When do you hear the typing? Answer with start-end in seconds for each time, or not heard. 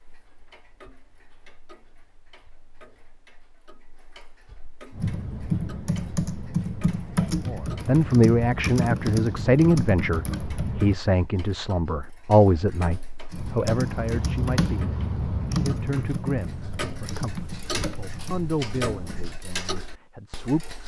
4.9-11.0, 13.3-19.4.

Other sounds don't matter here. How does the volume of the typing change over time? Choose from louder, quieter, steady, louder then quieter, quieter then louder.
quieter.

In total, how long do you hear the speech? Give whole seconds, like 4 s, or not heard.
13 s.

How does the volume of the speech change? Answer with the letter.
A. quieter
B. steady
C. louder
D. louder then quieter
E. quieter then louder
A.